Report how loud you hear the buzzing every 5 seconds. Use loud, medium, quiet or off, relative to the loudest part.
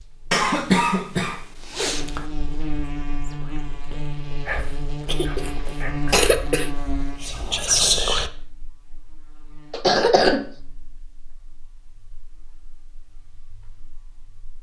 loud, loud, quiet.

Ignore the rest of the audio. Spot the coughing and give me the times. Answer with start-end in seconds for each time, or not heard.
0.3-2.2, 5.0-6.8, 9.7-10.4.